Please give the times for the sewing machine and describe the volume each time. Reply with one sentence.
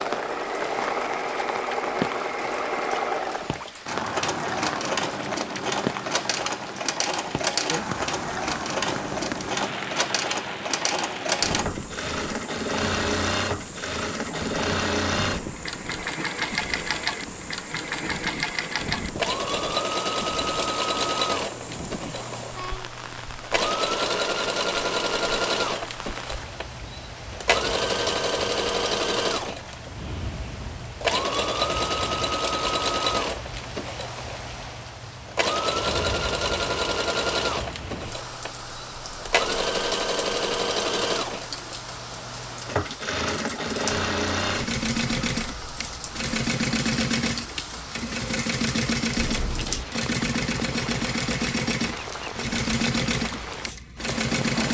The sewing machine can be heard from 0.0 to 54.6 s, at a steady volume.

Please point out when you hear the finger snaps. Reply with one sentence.
The finger snaps can be heard from 49.1 to 49.9 s.